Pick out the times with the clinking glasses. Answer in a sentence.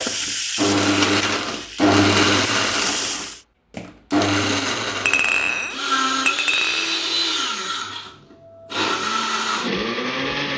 The clinking glasses can be heard from 5.0 to 7.2 s.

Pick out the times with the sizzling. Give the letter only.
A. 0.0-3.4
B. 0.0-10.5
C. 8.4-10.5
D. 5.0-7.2
A.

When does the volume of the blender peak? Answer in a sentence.
The loudest moment of the blender is at 2 seconds.